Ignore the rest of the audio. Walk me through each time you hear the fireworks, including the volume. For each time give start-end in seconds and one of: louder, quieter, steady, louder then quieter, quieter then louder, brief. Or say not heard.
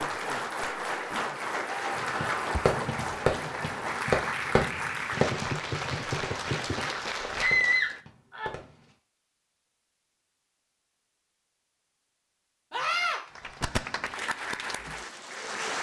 1.9-8.9 quieter.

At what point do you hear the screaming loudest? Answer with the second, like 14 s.
8 s.